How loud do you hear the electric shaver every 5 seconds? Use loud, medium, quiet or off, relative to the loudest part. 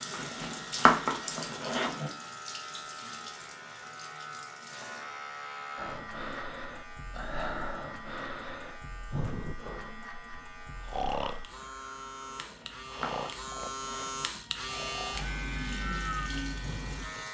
medium, medium, loud, loud.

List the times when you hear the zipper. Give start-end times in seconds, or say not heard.
0.1-2.1, 12.3-14.2.